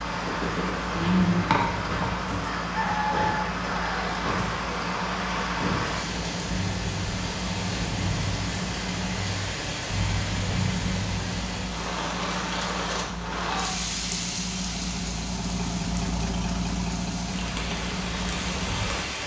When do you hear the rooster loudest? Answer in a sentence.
The volume of the rooster peaks at 1 second.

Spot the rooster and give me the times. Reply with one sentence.
The rooster can be heard from 0.9 to 4.2 s.